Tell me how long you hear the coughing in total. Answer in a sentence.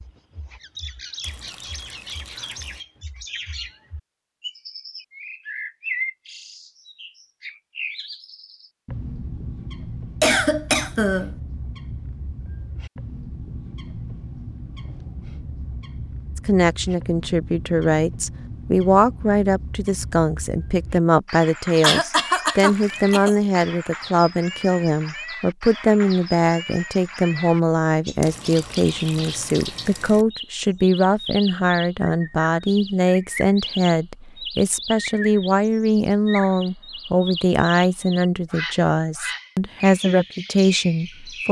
You can hear the coughing for 3 seconds altogether.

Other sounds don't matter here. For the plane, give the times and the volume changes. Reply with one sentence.
The plane can't be heard in this clip.